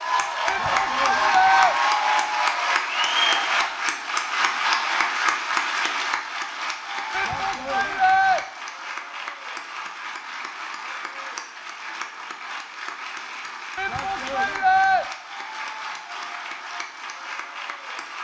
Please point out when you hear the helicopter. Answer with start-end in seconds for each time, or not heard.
not heard.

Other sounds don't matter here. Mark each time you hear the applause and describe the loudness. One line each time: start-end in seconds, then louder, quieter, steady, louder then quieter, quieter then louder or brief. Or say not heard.
0.0-18.1 quieter.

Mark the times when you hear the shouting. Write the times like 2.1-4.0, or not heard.
0.5-1.8, 7.1-8.4, 13.8-15.1.